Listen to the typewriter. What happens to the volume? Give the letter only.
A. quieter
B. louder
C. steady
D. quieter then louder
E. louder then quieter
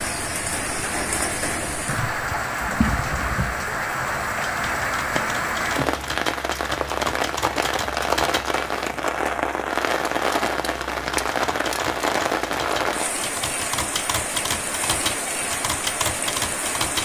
B.